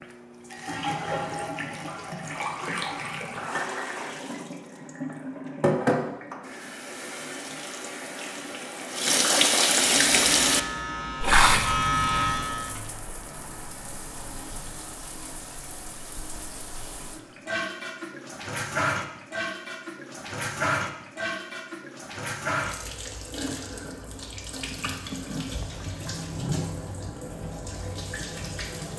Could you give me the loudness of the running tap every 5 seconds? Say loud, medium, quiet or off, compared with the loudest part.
medium, loud, loud, medium, medium, medium.